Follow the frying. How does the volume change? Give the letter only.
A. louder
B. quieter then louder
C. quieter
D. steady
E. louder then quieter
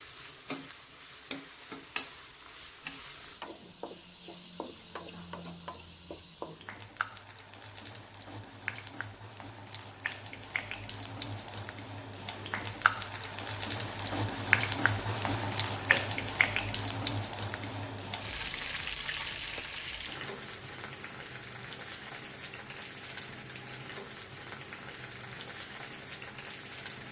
E.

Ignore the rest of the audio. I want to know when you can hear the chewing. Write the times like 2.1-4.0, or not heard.
not heard.